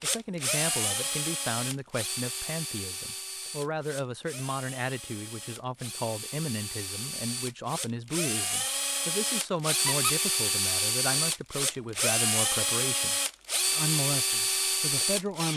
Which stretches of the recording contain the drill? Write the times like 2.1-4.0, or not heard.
0.0-15.5.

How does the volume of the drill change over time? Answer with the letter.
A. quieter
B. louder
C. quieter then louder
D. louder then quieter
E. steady
C.